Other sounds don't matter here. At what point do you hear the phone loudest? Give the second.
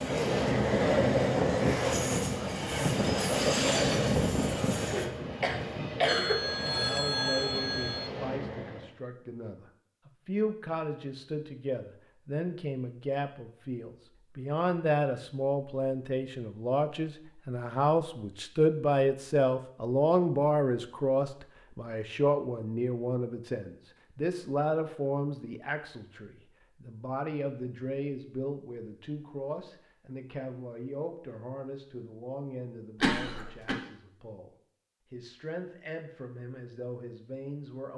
7 s.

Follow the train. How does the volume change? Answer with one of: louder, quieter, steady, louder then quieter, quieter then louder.
quieter.